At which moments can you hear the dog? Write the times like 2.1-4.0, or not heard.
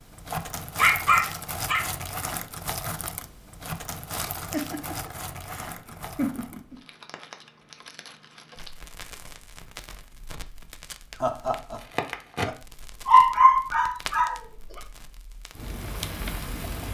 0.3-1.8, 13.1-14.4.